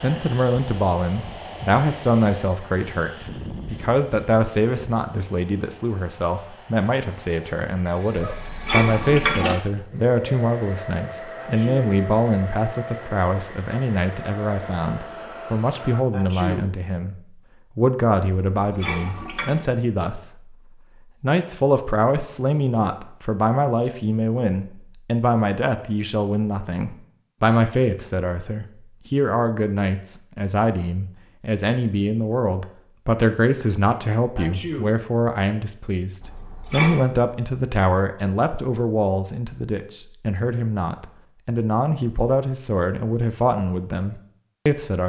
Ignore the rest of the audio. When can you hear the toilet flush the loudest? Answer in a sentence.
The volume of the toilet flush peaks at 9 seconds.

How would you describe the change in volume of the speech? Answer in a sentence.
The loudness of the speech stays about the same.